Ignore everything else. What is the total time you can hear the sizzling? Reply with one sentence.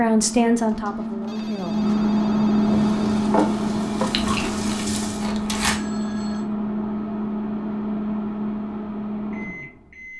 You can hear the sizzling for 3 seconds altogether.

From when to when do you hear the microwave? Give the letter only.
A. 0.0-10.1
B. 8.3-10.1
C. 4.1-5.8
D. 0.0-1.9
A.